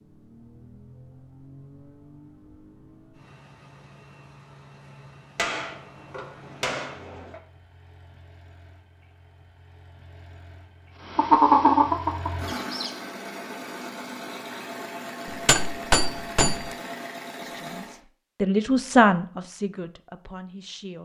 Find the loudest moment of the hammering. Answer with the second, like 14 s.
16 s.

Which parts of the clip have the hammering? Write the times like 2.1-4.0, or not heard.
5.3-7.4, 15.2-16.7.